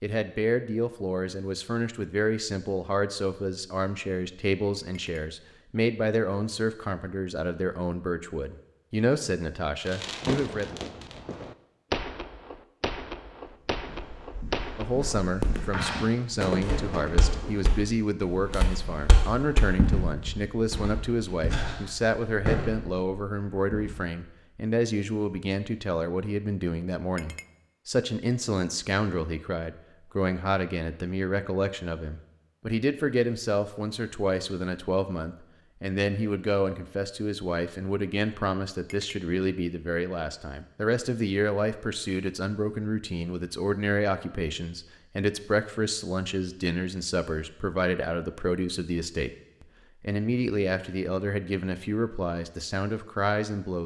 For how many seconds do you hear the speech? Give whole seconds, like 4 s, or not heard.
50 s.